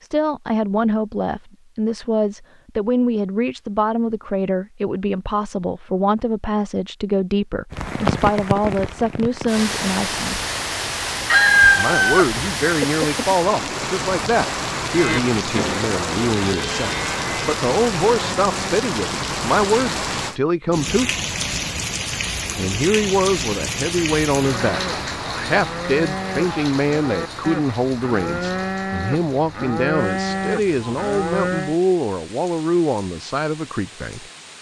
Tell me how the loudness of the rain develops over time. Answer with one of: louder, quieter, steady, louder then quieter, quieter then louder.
quieter.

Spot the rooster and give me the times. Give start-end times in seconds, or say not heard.
11.3-13.8.